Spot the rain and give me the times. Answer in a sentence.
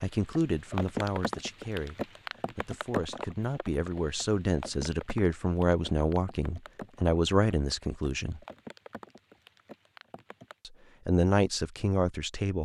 You can hear the rain from 0.0 to 10.6 s.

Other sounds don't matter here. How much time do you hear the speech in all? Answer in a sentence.
You can hear the speech for 10 seconds altogether.